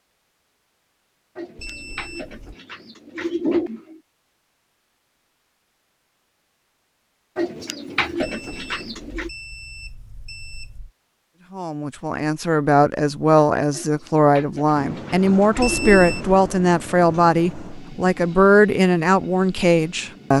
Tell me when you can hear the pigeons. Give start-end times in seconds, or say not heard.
1.4-4.0, 7.3-9.3, 13.7-16.1.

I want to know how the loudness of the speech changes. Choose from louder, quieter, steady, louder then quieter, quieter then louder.
steady.